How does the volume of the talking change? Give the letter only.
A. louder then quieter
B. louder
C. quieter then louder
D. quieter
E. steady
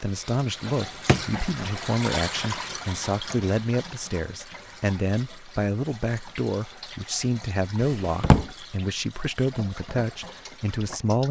E.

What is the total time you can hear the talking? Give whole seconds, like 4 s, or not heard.
11 s.